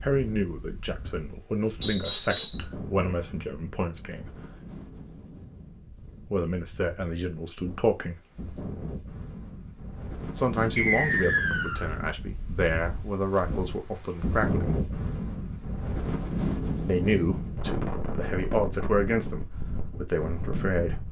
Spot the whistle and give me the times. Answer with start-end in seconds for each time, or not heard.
1.8-2.6, 10.8-11.8.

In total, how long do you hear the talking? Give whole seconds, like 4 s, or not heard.
15 s.